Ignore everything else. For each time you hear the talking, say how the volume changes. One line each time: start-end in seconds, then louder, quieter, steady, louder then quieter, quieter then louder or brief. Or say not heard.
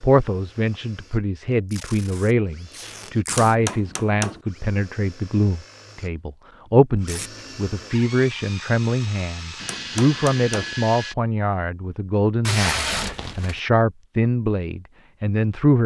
0.0-15.8 steady.